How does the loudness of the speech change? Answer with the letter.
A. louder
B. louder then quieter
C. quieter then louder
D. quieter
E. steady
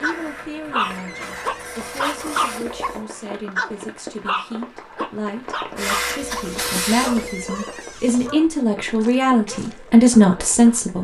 A.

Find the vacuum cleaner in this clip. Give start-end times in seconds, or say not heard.
0.0-3.0, 5.8-8.3.